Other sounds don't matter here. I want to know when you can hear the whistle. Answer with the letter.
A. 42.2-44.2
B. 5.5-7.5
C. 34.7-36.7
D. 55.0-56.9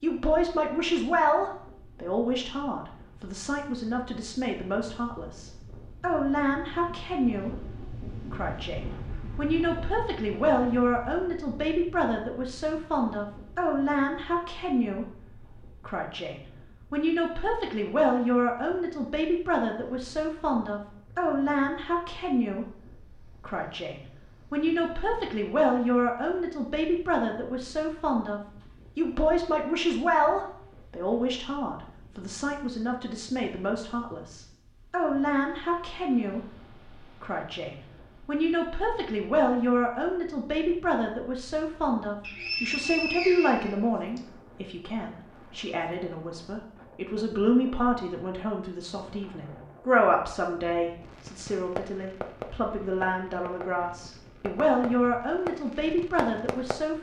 A.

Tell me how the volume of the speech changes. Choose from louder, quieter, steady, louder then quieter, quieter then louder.
steady.